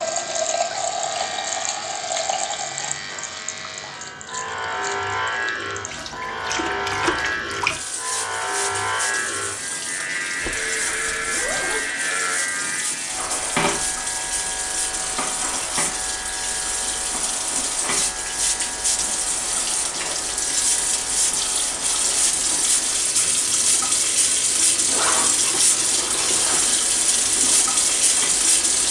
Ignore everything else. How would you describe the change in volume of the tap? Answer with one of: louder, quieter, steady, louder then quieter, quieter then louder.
louder.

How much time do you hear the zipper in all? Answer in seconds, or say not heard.
3 s.